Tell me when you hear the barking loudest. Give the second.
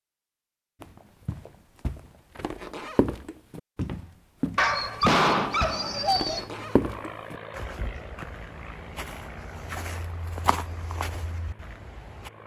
5 s.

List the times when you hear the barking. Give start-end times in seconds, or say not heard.
4.5-6.5.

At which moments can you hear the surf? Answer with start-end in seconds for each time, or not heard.
not heard.